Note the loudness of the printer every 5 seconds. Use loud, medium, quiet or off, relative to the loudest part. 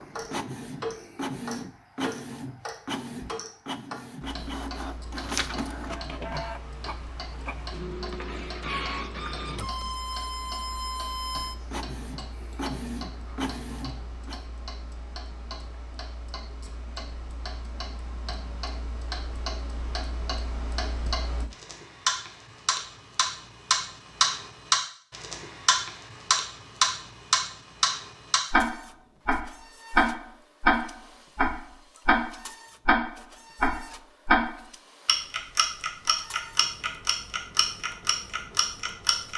loud, loud, loud, off, off, quiet, quiet, quiet.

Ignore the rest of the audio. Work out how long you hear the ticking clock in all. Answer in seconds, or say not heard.
39 s.